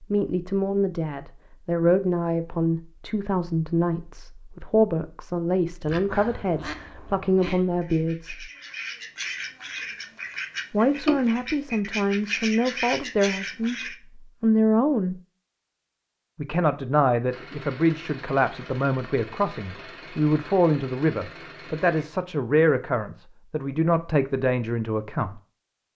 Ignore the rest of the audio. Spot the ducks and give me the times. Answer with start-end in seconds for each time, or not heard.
5.8-13.9.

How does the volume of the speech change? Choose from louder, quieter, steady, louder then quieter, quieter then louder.
steady.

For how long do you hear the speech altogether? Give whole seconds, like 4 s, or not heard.
22 s.